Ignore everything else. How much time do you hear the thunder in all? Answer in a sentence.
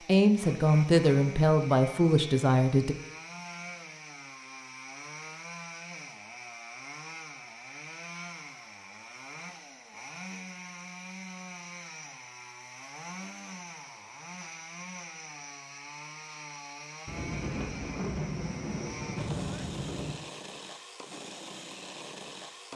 You can hear the thunder for 3 seconds altogether.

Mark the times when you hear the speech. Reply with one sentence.
The speech can be heard from 0.1 to 3.0 s.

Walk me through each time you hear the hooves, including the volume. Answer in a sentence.
The hooves can't be heard in this clip.